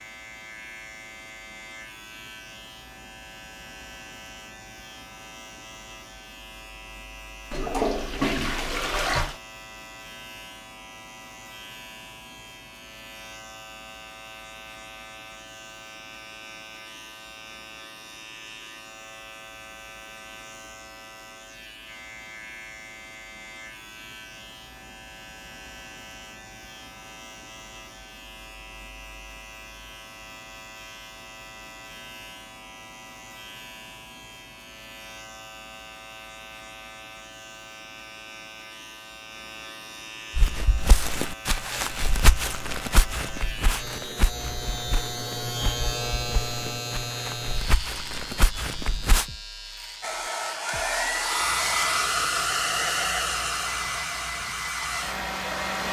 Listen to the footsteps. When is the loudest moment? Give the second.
42 s.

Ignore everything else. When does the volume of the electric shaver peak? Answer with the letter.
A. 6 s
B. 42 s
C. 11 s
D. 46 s
D.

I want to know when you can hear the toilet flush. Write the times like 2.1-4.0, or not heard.
7.5-9.4.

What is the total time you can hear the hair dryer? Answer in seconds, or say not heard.
6 s.